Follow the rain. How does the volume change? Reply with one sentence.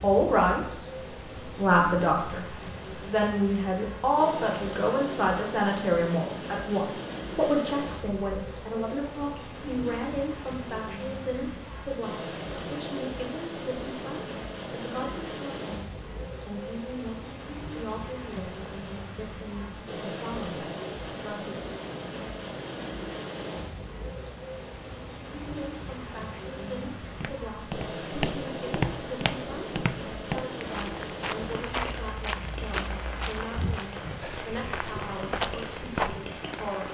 The volume of the rain stays about the same.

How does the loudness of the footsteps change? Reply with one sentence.
The loudness of the footsteps goes down, then up.